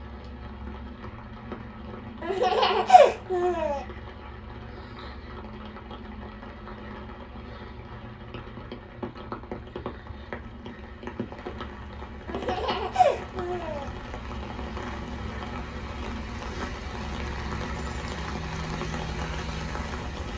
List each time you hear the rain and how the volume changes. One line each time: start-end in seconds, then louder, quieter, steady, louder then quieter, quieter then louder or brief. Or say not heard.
0.0-20.3 louder.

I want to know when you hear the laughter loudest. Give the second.
3 s.